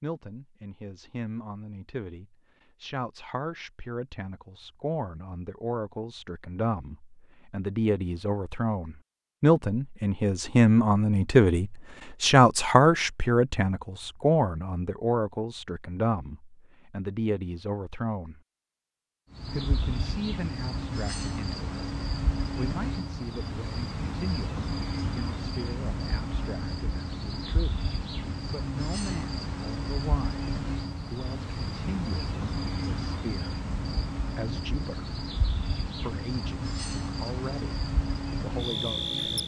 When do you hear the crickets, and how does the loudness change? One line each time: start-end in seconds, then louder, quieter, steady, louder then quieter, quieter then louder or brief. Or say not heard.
19.3-39.4 steady.